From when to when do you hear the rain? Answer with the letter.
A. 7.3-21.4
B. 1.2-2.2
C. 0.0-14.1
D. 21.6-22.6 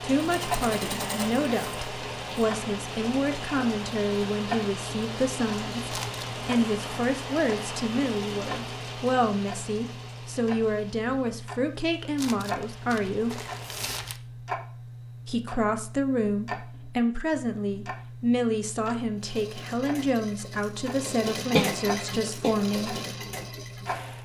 C.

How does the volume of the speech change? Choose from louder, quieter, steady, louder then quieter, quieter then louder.
steady.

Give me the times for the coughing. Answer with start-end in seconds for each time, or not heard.
21.6-22.6.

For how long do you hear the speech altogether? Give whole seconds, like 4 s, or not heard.
21 s.